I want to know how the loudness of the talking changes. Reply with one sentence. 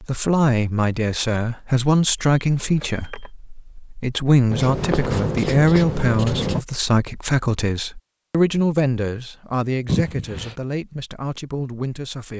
The volume of the talking goes down.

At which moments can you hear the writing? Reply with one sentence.
The writing can be heard from 4.5 to 6.6 s.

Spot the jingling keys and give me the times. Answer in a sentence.
The jingling keys can be heard from 2.4 to 3.3 s and from 9.8 to 10.6 s.